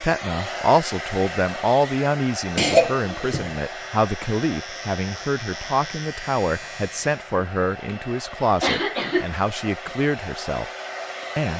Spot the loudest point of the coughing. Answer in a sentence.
The volume of the coughing peaks at 3 seconds.